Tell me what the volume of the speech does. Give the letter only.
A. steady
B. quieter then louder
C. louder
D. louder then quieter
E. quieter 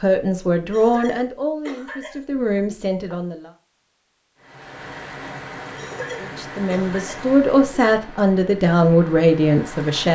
B.